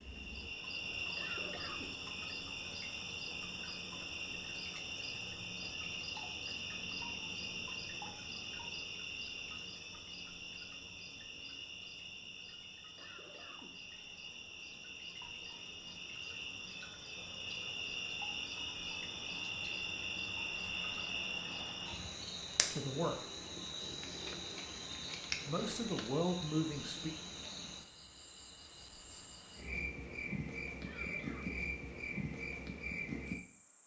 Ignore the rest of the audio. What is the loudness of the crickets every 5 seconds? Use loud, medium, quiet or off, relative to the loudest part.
loud, loud, medium, loud, loud, loud, loud.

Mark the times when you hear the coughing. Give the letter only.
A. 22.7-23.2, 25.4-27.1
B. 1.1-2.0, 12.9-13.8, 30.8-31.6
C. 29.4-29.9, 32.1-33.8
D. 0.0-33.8
B.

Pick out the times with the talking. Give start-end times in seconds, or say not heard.
22.7-23.2, 25.4-27.1.